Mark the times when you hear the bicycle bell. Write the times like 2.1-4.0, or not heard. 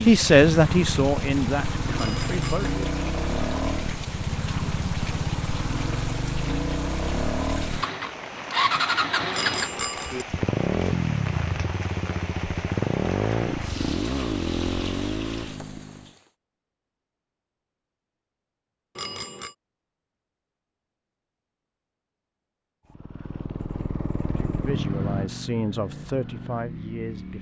1.9-2.8, 9.3-10.2, 18.9-19.6.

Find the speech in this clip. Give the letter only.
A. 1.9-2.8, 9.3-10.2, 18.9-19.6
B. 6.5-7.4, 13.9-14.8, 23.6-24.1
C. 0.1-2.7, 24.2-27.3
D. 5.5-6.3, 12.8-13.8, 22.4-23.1
C.